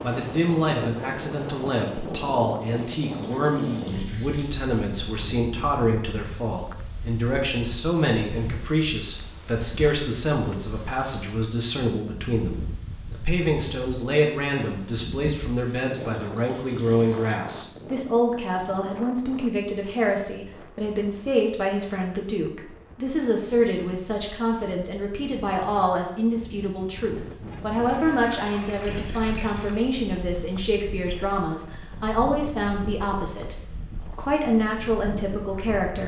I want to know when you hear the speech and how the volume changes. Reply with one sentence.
You can hear the speech from 0.0 to 33.5 s, at a steady volume; and briefly from 34.1 to 36.0 s.